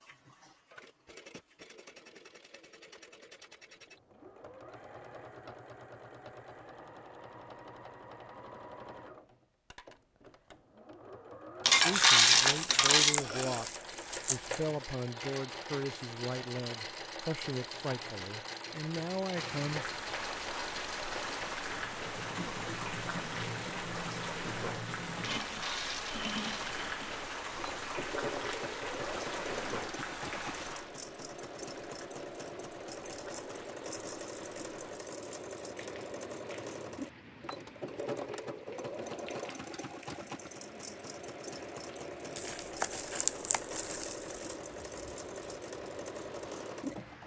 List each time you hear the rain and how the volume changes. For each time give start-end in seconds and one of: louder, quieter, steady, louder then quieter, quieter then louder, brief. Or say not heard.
19.4-47.2 quieter.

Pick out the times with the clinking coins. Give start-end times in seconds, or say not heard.
11.7-13.2, 25.2-26.6.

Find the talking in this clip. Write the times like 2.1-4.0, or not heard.
11.8-13.7, 14.3-19.9.